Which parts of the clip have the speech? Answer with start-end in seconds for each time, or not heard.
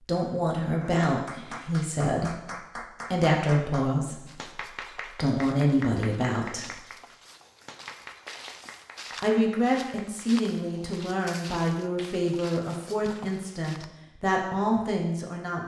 0.0-6.8, 9.2-15.6.